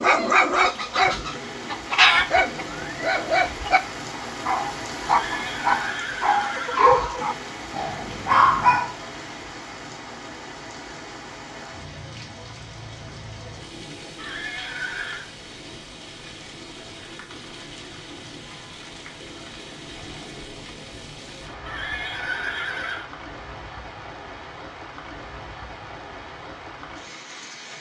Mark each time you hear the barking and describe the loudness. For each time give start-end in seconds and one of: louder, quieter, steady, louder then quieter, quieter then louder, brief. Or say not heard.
0.0-8.9 steady.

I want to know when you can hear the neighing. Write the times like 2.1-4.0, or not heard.
5.0-6.8, 14.2-15.2, 21.6-23.1.